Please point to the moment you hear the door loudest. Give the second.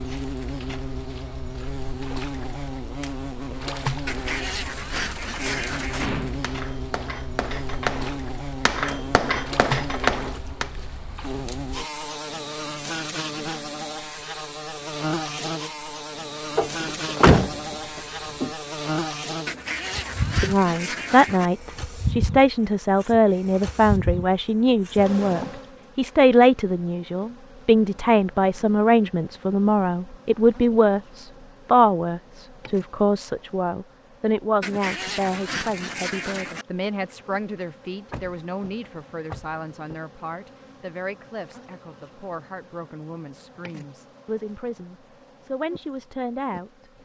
17 s.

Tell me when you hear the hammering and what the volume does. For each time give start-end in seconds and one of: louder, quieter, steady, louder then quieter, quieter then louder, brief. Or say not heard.
5.5-10.8 louder.